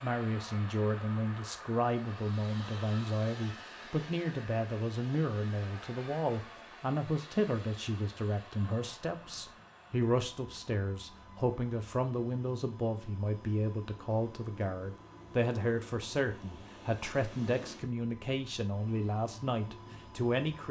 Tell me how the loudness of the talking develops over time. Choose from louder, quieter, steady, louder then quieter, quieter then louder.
steady.